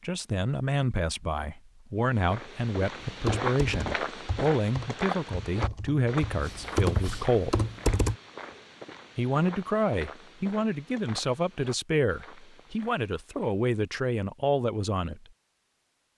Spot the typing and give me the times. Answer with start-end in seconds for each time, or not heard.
3.2-8.2.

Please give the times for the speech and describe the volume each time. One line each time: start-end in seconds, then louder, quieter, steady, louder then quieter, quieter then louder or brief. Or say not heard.
0.0-7.6 steady
9.2-15.2 steady.